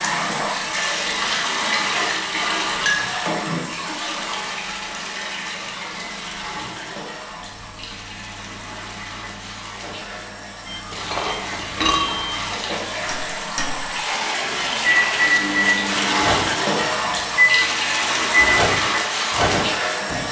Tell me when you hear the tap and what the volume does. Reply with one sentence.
You can hear the tap from 0.0 to 20.2 s, getting quieter then louder.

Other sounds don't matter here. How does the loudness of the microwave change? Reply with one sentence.
The loudness of the microwave goes up.